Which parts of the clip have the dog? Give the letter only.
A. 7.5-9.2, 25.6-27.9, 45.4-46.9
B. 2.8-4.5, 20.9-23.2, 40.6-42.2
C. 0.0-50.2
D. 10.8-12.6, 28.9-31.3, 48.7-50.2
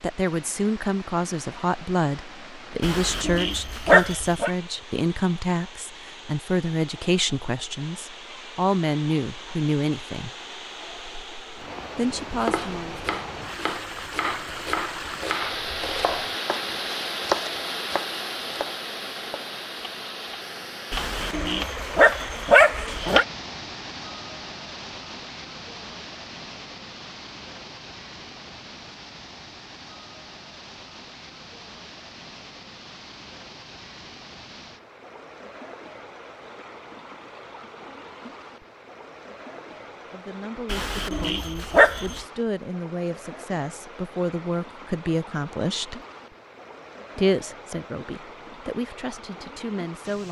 B.